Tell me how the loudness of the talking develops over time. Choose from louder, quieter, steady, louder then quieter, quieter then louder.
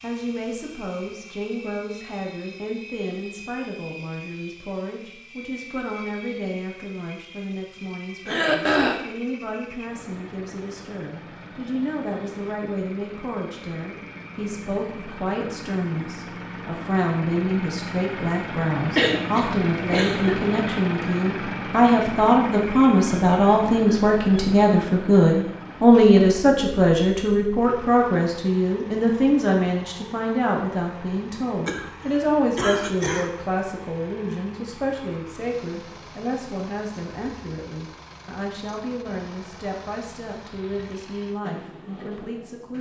louder then quieter.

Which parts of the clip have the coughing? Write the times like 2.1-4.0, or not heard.
8.2-9.0, 18.9-20.4, 31.6-33.3.